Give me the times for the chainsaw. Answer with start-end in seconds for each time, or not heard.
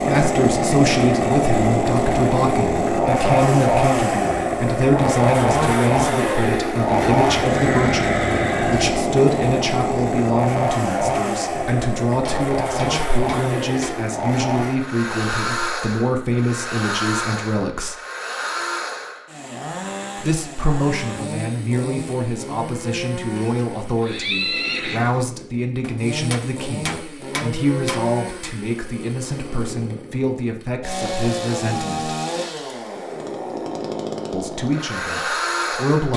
0.0-36.1.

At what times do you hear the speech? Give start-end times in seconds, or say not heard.
0.1-17.9, 20.2-32.1, 34.3-36.1.